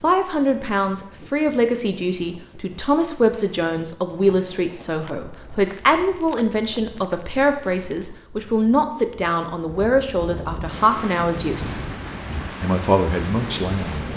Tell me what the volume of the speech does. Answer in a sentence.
The loudness of the speech stays about the same.